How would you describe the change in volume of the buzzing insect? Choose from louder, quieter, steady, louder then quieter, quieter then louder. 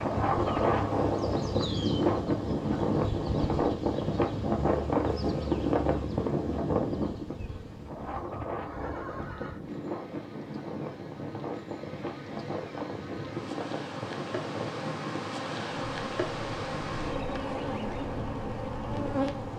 quieter then louder.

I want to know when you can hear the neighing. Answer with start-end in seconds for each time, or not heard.
8.6-9.7.